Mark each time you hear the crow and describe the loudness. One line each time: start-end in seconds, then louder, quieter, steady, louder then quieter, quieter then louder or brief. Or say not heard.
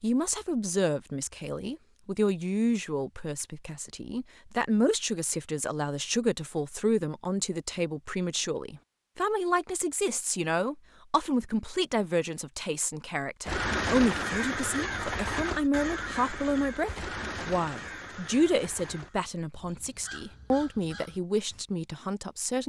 13.4-21.6 quieter.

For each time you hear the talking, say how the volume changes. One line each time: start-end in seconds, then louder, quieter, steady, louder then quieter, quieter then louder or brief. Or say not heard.
0.0-22.6 steady.